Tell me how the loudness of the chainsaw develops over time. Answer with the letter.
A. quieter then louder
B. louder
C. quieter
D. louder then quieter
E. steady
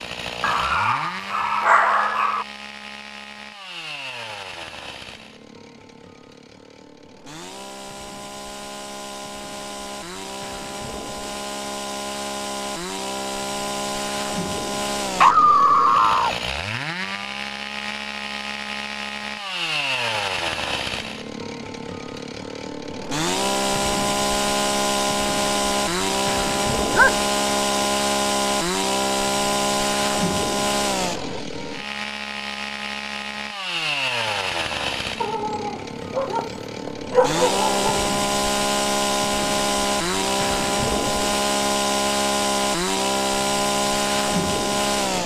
B.